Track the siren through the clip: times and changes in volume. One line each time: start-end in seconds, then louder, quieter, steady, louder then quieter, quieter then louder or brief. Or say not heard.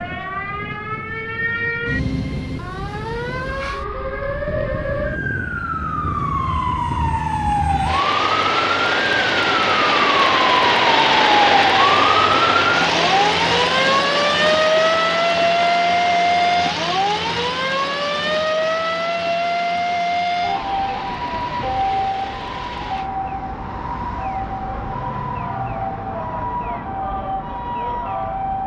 0.0-28.6 louder then quieter.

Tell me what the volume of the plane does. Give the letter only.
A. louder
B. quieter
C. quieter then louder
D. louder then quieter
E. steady
D.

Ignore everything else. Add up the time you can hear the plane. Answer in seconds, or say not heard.
23 s.